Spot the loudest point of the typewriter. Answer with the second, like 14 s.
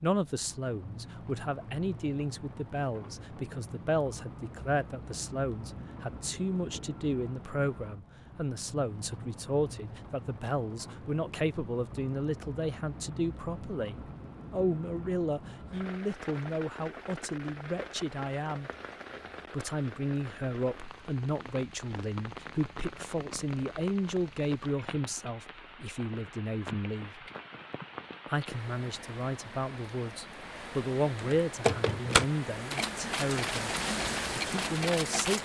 32 s.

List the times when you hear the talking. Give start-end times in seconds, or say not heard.
0.0-18.7, 19.5-27.2, 28.2-33.7, 34.4-35.3.